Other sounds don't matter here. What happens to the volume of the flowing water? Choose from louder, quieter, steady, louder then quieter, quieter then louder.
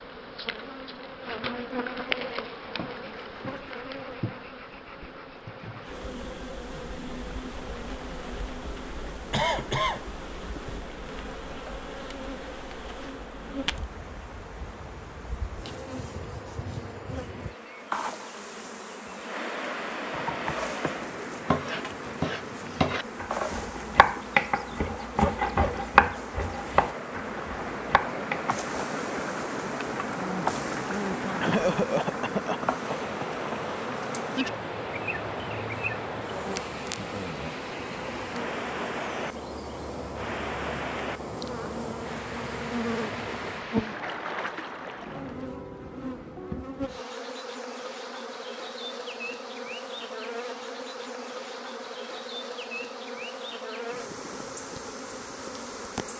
louder.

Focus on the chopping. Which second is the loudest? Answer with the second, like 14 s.
26 s.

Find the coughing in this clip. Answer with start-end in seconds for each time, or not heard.
9.3-10.1, 31.4-33.8.